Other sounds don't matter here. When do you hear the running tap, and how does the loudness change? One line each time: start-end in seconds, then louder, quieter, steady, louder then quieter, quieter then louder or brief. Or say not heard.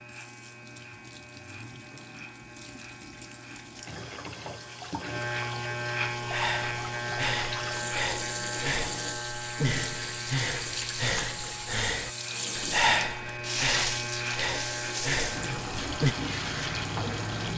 0.0-17.5 louder.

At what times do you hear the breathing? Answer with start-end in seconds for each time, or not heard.
6.2-16.1.